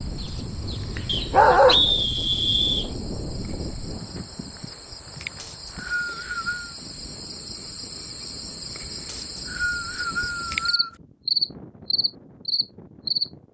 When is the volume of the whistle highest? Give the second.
2 s.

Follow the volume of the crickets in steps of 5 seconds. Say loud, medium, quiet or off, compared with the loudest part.
quiet, medium, loud.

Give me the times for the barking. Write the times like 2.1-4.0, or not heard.
0.2-1.9.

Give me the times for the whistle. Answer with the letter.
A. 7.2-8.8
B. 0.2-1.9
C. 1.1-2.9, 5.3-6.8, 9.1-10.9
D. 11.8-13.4
C.